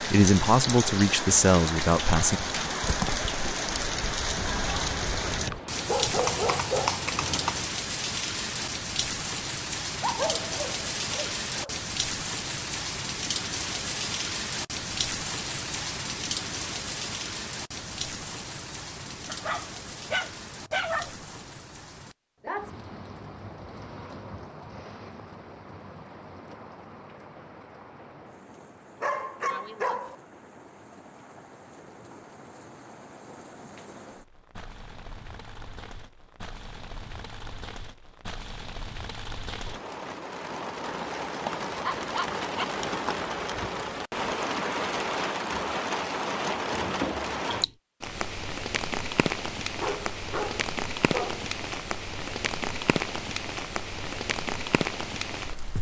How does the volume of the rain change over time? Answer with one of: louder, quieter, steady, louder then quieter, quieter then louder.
quieter then louder.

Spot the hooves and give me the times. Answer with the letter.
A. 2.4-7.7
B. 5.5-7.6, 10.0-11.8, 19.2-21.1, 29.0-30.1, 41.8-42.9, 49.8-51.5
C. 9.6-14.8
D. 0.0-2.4
A.